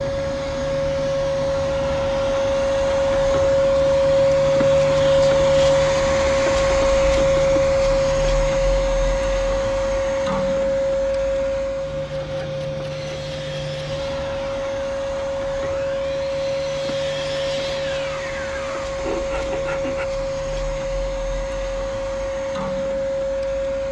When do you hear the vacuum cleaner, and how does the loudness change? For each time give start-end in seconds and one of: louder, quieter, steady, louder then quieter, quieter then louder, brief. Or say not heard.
0.0-23.8 quieter.